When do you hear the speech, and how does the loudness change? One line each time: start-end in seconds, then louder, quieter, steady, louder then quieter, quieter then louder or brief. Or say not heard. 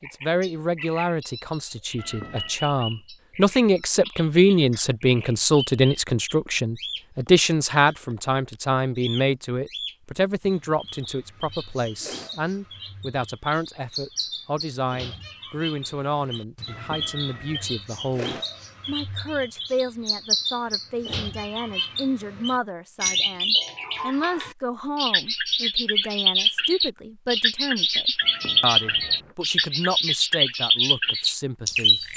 0.0-32.0 quieter.